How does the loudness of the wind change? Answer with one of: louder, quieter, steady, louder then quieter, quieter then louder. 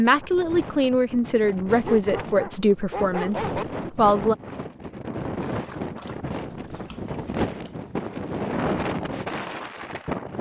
louder.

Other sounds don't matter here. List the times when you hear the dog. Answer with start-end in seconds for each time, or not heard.
1.9-3.6, 5.4-7.8.